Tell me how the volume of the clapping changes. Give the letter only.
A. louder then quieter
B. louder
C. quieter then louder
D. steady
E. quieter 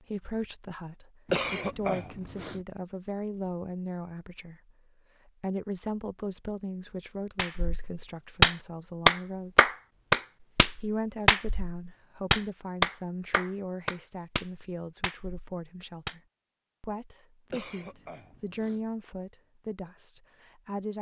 E.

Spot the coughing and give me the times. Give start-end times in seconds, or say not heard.
1.2-2.6, 17.5-18.9.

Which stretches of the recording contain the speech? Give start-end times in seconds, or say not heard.
0.0-9.7, 10.8-16.2, 16.8-20.9.